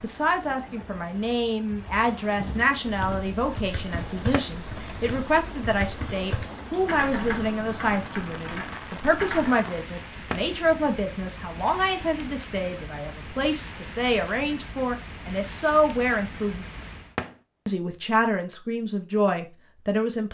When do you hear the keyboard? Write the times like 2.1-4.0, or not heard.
2.8-9.6.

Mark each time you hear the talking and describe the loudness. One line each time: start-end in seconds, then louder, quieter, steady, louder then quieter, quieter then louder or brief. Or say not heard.
0.0-16.6 steady
17.6-20.2 brief.